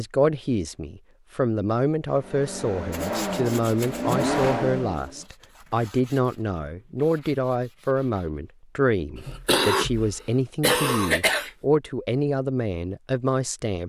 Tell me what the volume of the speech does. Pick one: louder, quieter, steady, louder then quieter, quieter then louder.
steady.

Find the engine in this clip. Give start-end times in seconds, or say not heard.
2.0-5.2.